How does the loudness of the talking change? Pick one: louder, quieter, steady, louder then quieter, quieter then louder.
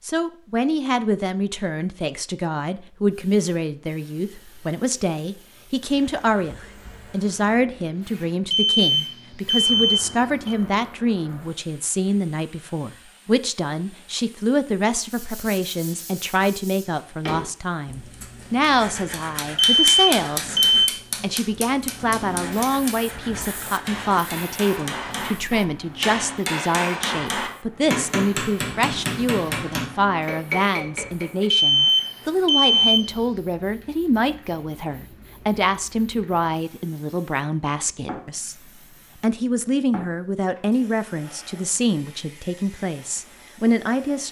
steady.